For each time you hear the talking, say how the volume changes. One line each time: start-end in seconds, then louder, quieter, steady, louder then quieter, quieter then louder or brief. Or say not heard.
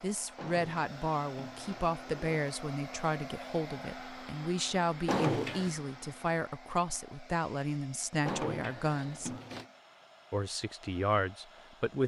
0.0-9.3 steady
10.3-12.0 brief.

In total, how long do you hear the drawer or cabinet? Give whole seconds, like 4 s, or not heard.
4 s.